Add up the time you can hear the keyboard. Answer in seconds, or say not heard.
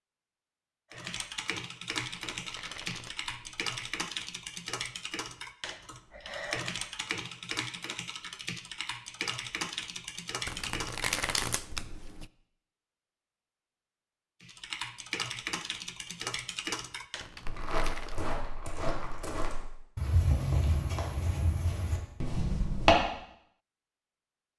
13 s.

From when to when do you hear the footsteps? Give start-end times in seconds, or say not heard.
17.4-22.9.